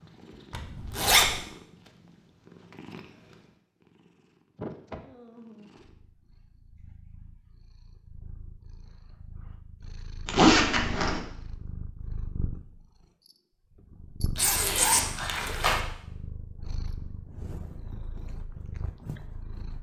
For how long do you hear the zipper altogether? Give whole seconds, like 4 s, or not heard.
3 s.